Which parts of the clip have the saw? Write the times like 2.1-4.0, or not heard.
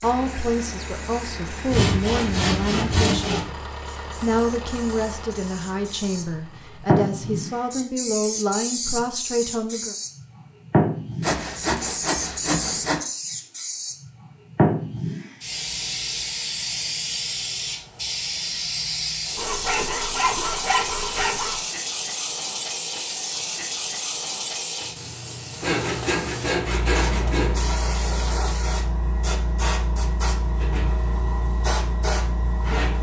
1.7-3.5, 11.2-13.0, 19.4-21.6, 25.6-27.6.